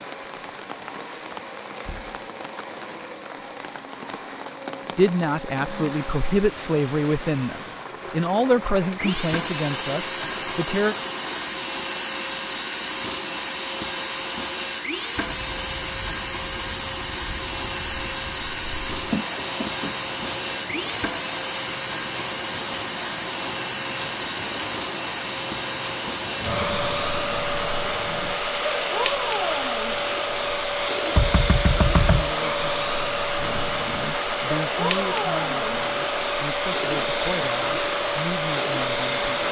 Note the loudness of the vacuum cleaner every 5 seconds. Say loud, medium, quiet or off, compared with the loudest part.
quiet, medium, loud, loud, loud, loud, loud, loud.